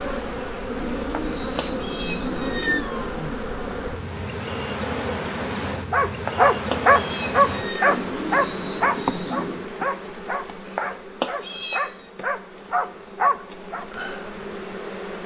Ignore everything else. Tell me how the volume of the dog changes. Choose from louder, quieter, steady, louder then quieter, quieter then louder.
quieter then louder.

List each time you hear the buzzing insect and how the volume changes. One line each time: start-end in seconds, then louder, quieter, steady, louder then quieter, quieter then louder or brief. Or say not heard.
0.0-15.2 quieter.